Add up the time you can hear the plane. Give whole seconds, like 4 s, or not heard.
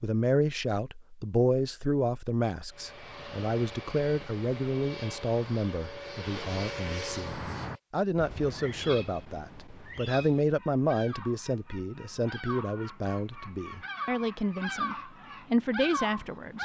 5 s.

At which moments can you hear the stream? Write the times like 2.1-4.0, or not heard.
not heard.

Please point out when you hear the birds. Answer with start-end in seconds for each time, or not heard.
7.2-16.6.